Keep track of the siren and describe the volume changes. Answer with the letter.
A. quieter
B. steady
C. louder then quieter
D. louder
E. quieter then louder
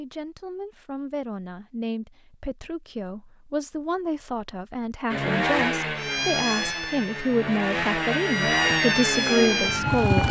E.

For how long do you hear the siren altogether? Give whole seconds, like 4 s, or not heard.
4 s.